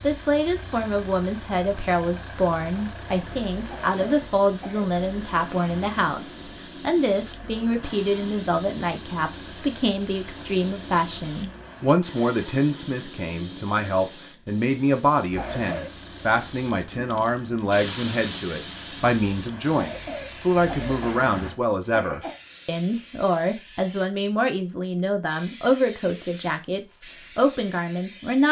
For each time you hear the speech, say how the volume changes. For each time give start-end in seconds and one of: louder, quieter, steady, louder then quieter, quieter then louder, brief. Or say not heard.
0.0-28.4 steady.